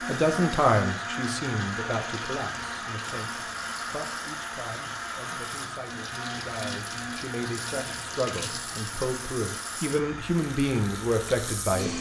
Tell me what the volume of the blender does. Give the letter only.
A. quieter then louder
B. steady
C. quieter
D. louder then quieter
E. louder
C.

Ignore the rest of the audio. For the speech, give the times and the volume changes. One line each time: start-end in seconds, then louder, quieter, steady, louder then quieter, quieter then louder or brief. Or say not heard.
0.1-11.9 quieter then louder.